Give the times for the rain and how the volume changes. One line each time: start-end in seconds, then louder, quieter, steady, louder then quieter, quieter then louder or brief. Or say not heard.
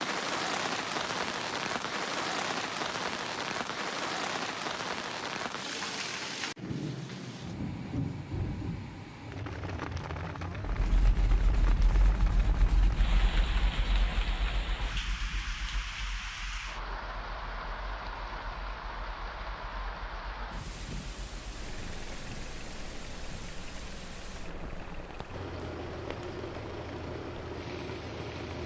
0.0-28.6 quieter.